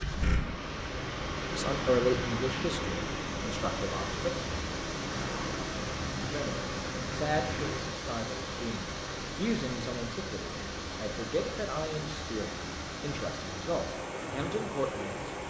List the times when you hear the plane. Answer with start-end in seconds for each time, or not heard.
5.0-7.8.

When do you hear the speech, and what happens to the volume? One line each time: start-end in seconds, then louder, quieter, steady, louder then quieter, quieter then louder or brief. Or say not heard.
1.6-4.3 brief
6.2-15.3 steady.